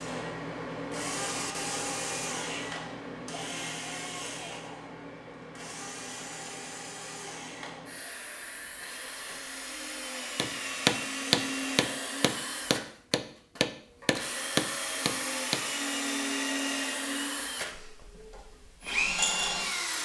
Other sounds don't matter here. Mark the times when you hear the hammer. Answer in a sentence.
The hammer can be heard from 10.3 to 15.7 s.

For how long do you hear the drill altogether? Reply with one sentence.
The drill can be heard for 20 seconds in total.